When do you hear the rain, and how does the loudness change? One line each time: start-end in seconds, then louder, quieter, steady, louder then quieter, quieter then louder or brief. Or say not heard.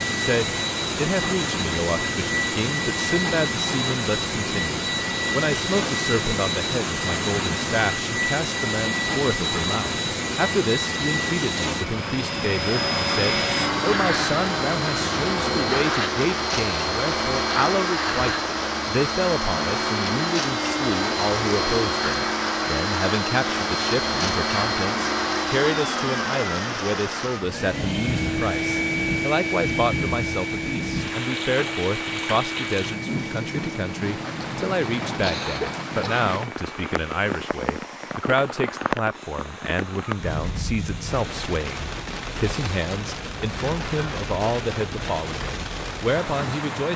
0.0-46.9 steady.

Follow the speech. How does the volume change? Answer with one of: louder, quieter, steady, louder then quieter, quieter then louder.
steady.